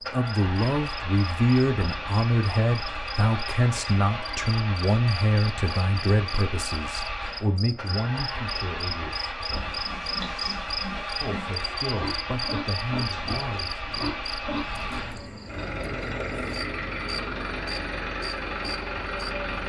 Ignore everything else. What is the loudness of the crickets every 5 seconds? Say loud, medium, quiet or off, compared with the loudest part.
medium, loud, loud, medium.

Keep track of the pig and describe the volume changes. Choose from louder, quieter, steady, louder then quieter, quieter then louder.
louder.